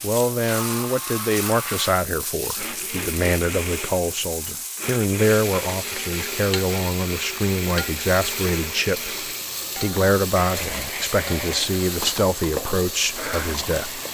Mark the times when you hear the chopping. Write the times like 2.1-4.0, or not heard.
not heard.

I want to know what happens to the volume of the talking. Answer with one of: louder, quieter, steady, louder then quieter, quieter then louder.
steady.